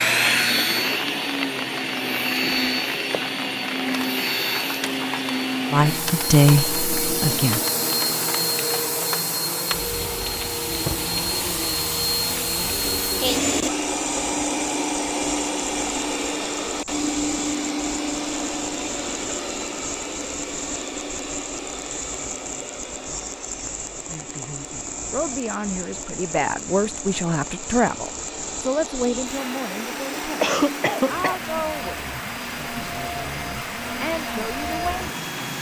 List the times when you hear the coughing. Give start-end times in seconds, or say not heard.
30.4-31.4.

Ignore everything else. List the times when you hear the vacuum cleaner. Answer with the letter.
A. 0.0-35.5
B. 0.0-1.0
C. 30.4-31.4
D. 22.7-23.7
A.